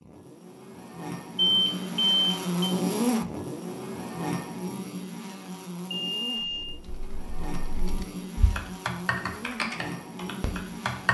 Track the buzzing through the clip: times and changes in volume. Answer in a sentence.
The buzzing can be heard from 0.0 to 11.0 s, getting louder then quieter.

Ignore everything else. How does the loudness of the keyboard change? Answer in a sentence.
The volume of the keyboard goes up, then down.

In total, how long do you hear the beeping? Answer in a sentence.
The beeping can be heard for 2 seconds in total.